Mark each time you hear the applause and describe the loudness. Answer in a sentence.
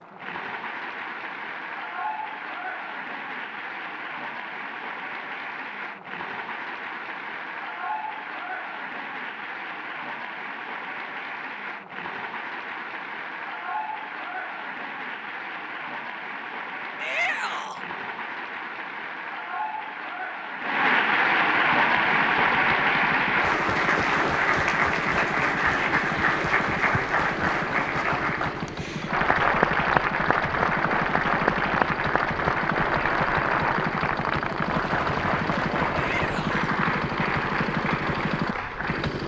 The applause can be heard from 0.0 to 39.2 s, getting louder.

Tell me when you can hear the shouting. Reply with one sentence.
The shouting can be heard from 16.9 to 17.9 s and from 35.9 to 36.8 s.